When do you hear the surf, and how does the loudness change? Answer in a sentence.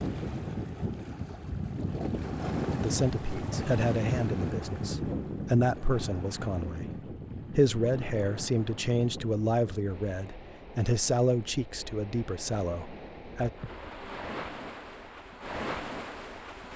The surf can be heard from 0.0 to 16.7 s, getting quieter then louder.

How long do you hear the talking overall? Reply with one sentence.
You can hear the talking for 11 seconds altogether.